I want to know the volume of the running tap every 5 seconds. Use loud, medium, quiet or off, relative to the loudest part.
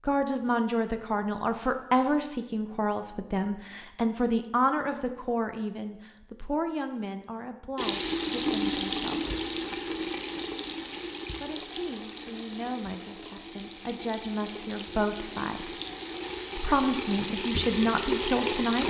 off, loud, medium, loud.